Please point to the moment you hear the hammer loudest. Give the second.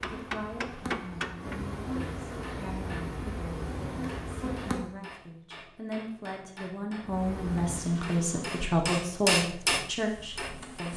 9 s.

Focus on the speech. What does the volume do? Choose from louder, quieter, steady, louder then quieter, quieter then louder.
louder.